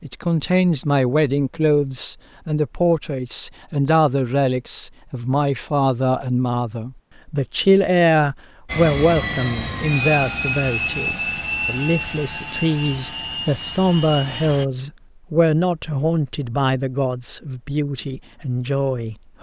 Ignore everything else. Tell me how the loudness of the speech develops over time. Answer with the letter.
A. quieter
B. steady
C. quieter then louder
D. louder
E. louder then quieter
B.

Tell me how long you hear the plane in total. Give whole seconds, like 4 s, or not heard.
6 s.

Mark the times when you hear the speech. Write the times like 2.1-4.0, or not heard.
0.0-19.3.